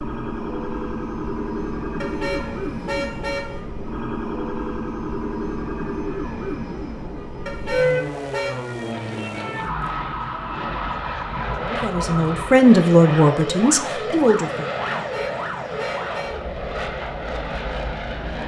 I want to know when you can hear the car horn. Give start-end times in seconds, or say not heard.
2.0-3.6, 7.5-8.6, 14.9-16.4.